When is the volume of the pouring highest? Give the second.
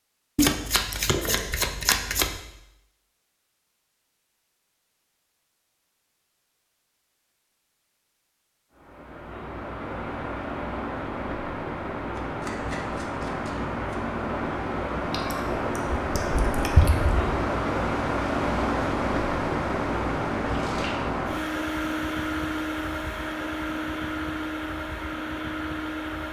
17 s.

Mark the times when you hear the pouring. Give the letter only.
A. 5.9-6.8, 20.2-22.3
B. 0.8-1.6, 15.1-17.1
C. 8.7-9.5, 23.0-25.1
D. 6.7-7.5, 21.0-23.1
B.